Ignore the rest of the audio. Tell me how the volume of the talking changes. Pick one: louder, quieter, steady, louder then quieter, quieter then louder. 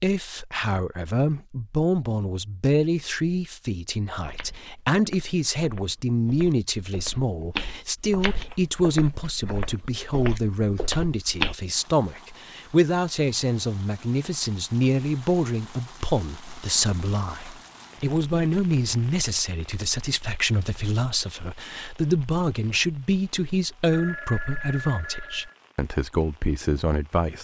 steady.